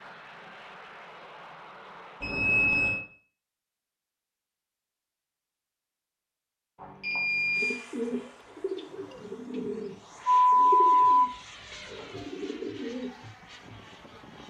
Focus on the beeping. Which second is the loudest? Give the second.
11 s.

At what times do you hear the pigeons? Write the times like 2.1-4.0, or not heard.
7.5-14.2.